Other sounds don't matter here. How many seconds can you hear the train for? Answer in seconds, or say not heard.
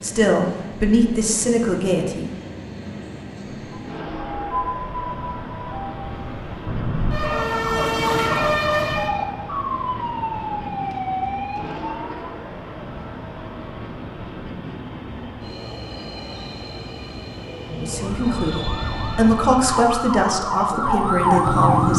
20 s.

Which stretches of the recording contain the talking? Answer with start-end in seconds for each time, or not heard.
0.0-2.3, 17.8-21.9.